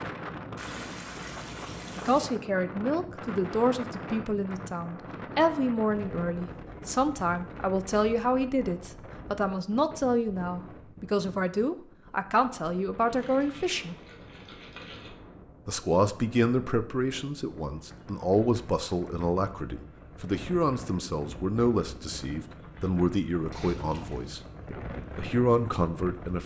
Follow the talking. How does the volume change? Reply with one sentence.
The volume of the talking stays about the same.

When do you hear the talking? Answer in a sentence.
The talking can be heard from 1.9 to 13.9 s and from 15.7 to 26.4 s.